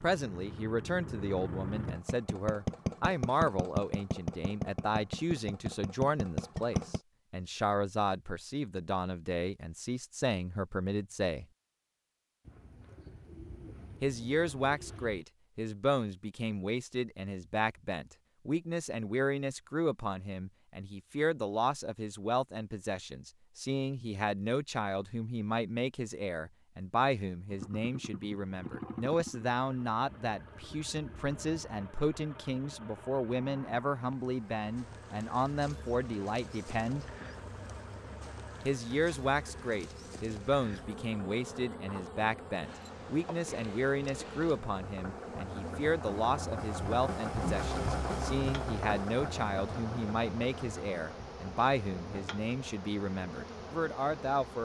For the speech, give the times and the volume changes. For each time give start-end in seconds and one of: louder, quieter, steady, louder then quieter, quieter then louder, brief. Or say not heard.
0.0-11.4 steady
14.0-37.0 steady
38.6-54.5 steady.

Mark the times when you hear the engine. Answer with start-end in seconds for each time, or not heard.
0.0-7.0, 27.4-54.5.